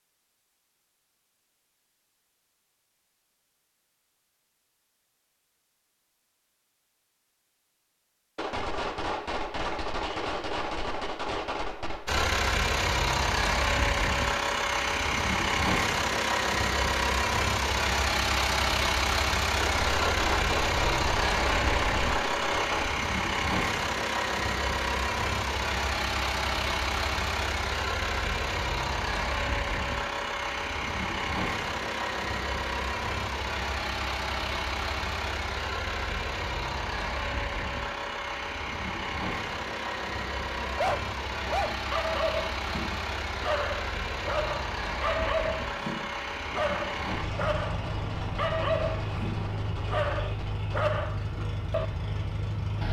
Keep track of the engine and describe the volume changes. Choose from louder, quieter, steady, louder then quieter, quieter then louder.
quieter.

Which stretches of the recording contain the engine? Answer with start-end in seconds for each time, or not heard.
12.1-52.8.